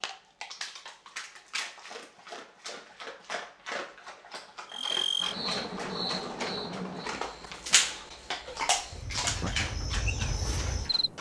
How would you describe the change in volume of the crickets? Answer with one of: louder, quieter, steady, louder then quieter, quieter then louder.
quieter then louder.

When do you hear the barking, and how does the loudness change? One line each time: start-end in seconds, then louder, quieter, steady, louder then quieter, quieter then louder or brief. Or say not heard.
0.0-11.1 louder.